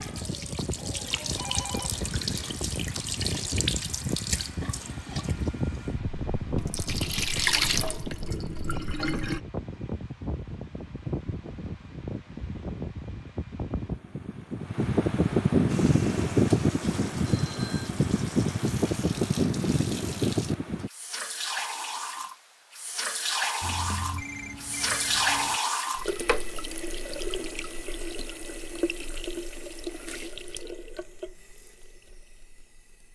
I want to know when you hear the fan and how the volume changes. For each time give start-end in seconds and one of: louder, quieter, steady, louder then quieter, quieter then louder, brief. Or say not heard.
0.0-20.9 louder.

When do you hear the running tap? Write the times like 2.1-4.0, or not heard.
0.0-9.4, 15.7-33.0.